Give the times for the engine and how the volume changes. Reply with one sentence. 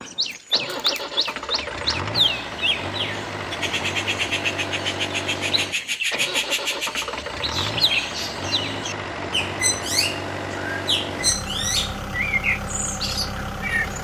You can hear the engine from 0.0 to 13.9 s, at a steady volume.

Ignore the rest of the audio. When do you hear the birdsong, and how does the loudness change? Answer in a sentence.
You can hear the birdsong from 0.0 to 13.9 s, at a steady volume.